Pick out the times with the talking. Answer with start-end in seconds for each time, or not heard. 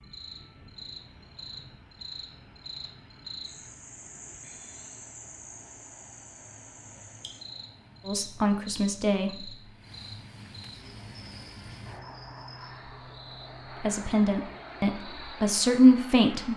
8.1-9.5, 13.8-16.5.